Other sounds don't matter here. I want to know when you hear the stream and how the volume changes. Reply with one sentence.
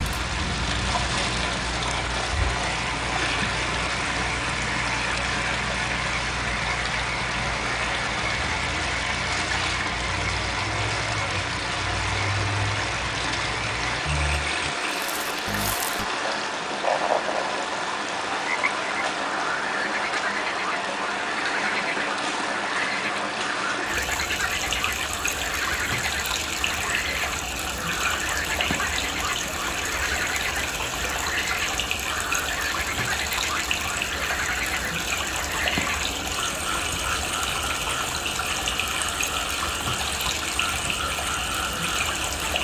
You can hear the stream from 0.0 to 42.5 s, at a steady volume.